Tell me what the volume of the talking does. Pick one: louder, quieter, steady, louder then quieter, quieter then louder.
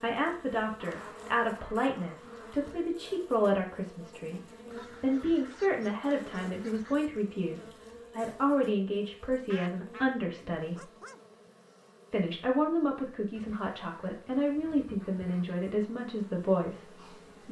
steady.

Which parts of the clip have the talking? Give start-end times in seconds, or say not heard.
0.0-10.9, 12.1-17.4.